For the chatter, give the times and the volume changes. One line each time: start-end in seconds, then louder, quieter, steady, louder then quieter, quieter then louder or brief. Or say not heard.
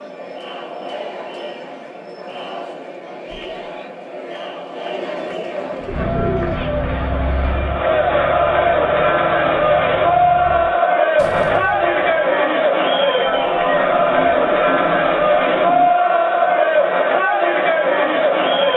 0.0-18.7 louder.